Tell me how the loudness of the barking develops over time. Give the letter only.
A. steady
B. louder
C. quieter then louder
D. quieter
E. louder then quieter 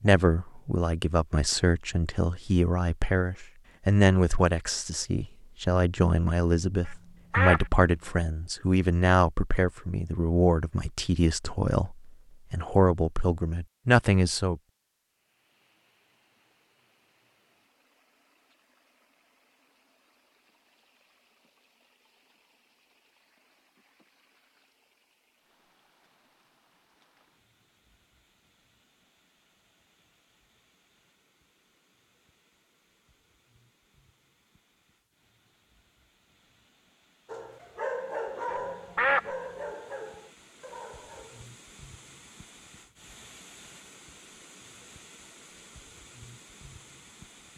D.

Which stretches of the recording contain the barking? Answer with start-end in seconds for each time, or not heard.
37.2-41.5.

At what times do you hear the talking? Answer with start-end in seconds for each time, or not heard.
0.0-14.6.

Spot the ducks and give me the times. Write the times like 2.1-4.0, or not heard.
6.8-7.7, 38.5-39.3.